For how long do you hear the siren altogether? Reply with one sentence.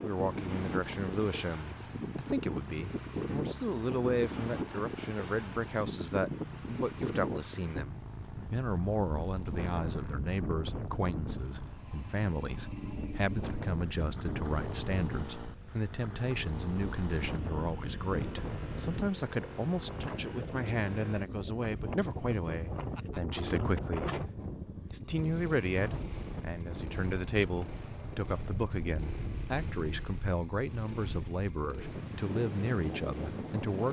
You can't hear the siren here.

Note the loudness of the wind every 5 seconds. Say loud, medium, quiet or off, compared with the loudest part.
loud, loud, loud, loud, loud, medium, loud.